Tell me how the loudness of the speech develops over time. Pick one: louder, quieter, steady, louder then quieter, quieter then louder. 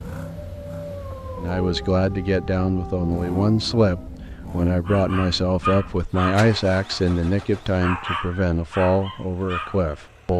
steady.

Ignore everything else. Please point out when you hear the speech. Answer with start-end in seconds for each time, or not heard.
1.4-10.3.